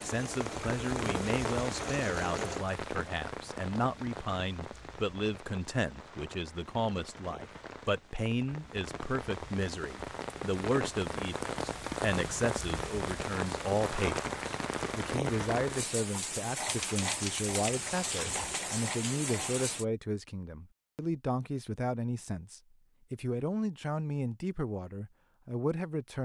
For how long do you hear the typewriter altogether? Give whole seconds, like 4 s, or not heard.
2 s.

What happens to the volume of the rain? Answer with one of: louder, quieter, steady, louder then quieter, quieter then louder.
quieter then louder.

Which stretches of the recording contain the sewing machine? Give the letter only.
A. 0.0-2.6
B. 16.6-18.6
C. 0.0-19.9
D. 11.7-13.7
A.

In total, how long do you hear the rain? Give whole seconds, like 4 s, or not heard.
20 s.